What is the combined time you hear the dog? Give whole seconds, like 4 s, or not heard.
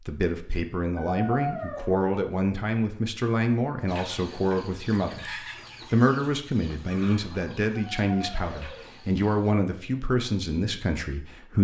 2 s.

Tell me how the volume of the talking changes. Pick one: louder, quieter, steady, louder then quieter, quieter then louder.
steady.